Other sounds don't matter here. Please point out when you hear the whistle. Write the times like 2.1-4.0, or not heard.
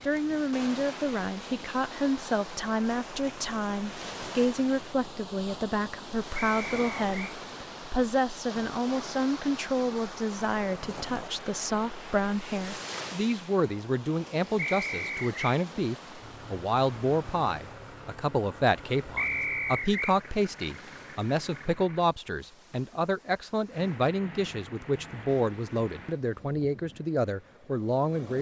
6.3-7.3, 14.6-15.6, 19.1-20.1.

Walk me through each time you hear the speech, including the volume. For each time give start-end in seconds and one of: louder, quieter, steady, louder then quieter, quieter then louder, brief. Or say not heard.
0.0-28.3 steady.